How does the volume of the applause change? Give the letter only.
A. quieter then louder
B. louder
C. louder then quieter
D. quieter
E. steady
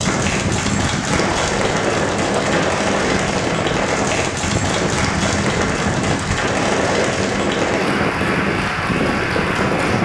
E.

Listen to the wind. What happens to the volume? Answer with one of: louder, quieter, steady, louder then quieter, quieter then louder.
steady.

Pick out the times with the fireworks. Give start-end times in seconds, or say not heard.
not heard.